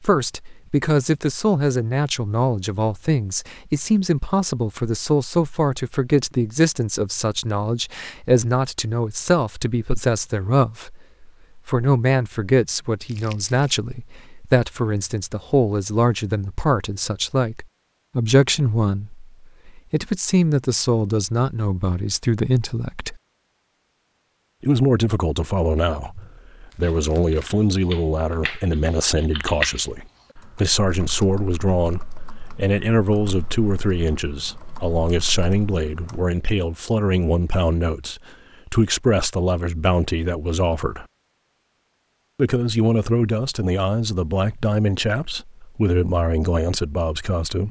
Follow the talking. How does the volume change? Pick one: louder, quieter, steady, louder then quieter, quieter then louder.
steady.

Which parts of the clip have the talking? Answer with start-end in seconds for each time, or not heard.
0.0-23.1, 24.6-41.0, 42.4-47.6.